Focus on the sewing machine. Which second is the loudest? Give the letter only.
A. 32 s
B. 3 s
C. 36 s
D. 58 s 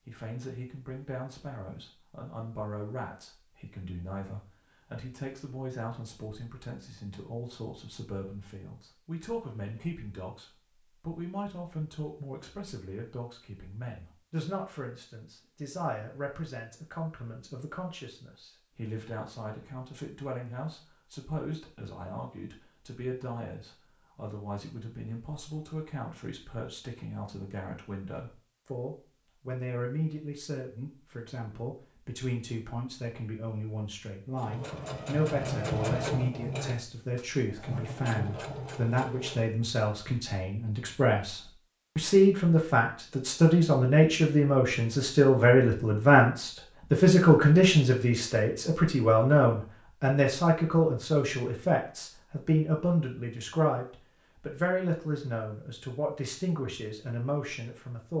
C.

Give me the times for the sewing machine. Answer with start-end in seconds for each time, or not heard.
34.3-39.5.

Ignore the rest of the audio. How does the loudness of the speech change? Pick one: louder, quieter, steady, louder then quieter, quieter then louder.
louder.